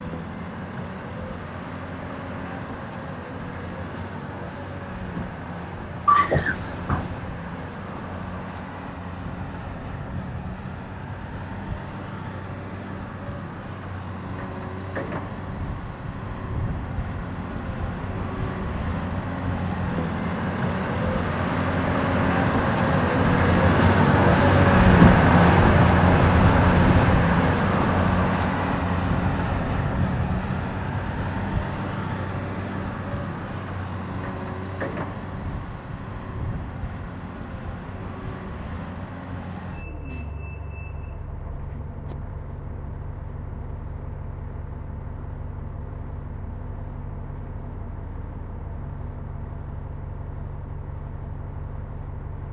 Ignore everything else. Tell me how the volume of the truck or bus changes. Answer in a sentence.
The volume of the truck or bus goes up, then down.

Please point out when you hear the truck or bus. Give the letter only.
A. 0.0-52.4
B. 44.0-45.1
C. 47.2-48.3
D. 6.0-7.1
A.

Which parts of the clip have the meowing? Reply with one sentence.
You can hear the meowing from 6.0 to 7.1 s.